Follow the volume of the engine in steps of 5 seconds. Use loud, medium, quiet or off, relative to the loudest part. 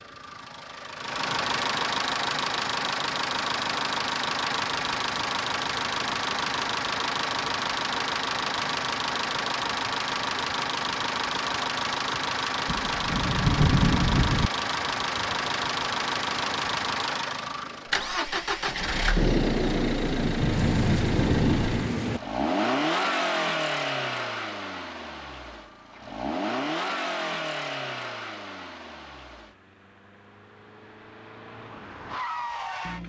loud, loud, loud, loud, loud, medium, medium.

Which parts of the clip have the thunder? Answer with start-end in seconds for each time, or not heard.
12.7-14.5, 19.1-22.2.